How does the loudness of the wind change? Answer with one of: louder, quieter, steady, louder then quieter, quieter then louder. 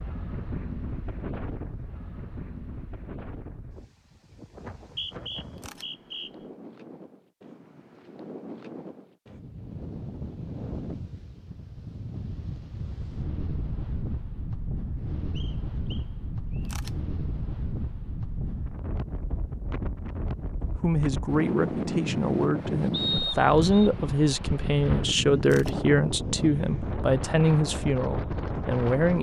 louder.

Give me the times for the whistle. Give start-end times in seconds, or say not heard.
4.6-6.3, 15.3-16.8, 22.9-23.9.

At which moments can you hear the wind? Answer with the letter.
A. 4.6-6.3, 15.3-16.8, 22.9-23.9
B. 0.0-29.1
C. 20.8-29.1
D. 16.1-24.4
B.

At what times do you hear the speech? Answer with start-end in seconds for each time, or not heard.
20.8-29.1.